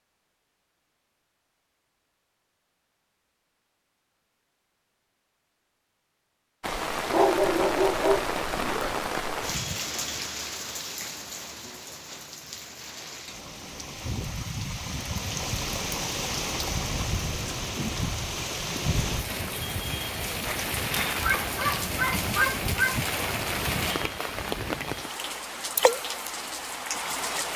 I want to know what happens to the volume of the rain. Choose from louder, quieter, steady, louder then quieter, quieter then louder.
quieter then louder.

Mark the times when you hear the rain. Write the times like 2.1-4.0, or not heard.
6.6-27.5.